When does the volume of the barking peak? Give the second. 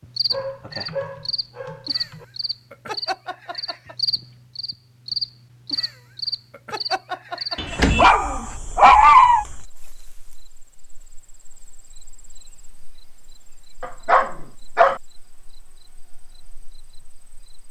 9 s.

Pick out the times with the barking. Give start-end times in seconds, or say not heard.
0.3-2.2, 7.5-9.4, 13.8-15.0.